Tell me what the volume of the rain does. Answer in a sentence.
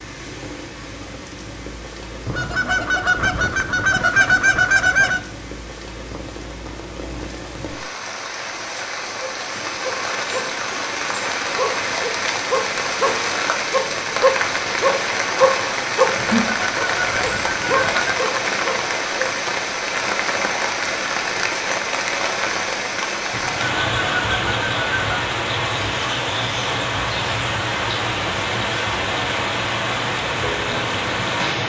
The volume of the rain goes up.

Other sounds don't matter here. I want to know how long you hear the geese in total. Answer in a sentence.
You can hear the geese for 7 seconds altogether.